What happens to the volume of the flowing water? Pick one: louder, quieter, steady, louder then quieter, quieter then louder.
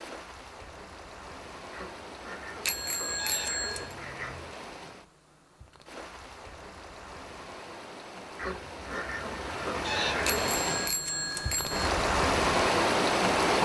louder.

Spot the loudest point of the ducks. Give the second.
10 s.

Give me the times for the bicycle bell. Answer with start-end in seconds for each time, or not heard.
2.6-4.0, 10.2-11.9.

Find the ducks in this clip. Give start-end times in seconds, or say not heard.
1.7-4.5, 8.3-10.6.